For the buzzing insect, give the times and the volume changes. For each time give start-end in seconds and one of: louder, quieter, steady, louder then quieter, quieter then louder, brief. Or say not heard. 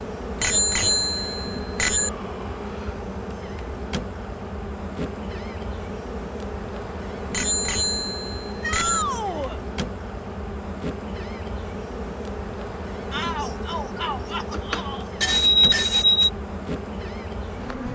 0.0-17.9 steady.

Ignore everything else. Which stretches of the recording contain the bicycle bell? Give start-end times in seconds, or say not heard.
0.4-2.1, 7.3-9.1, 14.5-16.3.